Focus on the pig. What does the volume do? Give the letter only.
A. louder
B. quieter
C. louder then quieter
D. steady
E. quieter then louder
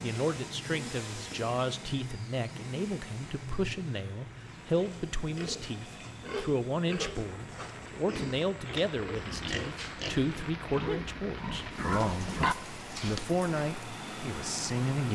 A.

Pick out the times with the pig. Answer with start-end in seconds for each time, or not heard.
4.4-13.4.